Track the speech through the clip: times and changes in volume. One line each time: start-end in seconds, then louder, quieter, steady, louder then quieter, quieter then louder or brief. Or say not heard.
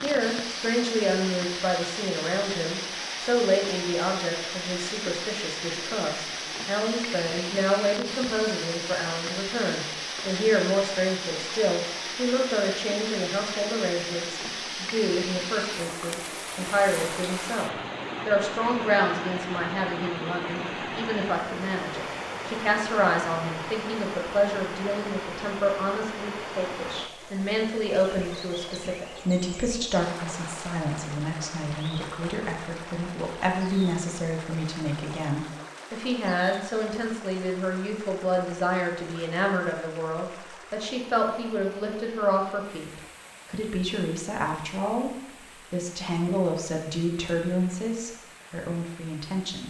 0.0-49.6 steady.